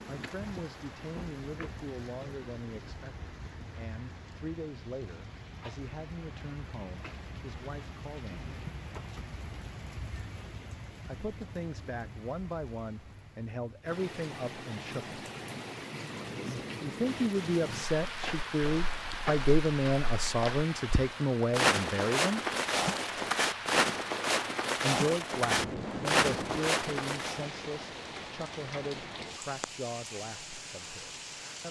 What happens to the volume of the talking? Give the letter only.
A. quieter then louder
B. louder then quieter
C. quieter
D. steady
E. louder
B.